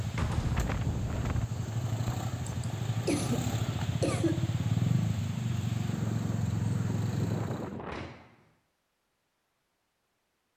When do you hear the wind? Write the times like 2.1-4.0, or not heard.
0.0-8.1.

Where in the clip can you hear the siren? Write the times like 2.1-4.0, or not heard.
not heard.